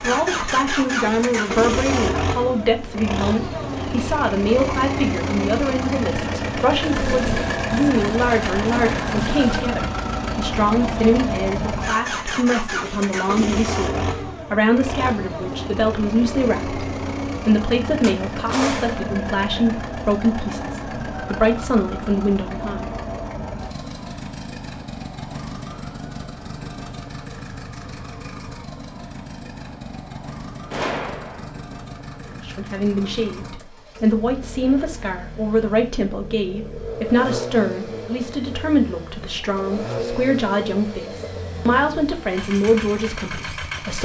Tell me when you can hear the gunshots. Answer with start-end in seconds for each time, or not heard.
6.8-9.7, 18.0-19.0, 30.7-31.5.